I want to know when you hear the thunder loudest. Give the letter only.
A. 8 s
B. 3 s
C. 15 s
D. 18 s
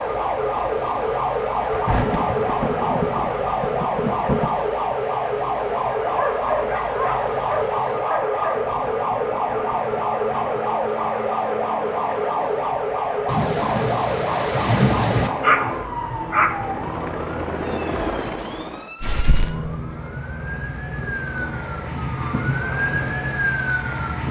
C.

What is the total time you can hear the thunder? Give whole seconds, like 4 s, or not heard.
5 s.